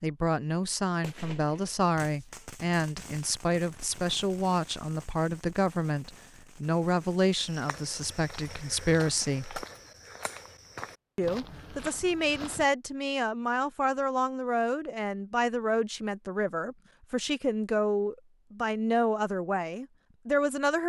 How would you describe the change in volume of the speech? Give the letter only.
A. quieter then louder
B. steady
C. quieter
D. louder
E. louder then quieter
B.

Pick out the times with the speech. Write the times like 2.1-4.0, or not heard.
0.0-9.7, 11.2-20.8.